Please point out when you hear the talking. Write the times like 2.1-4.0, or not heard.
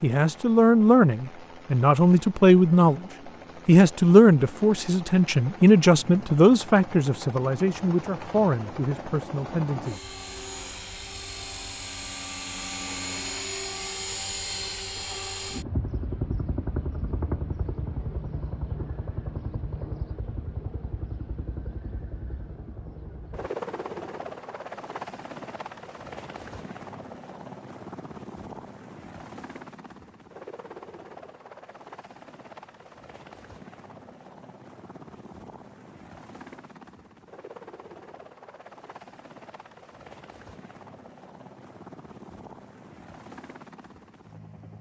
0.0-3.0, 3.6-10.0.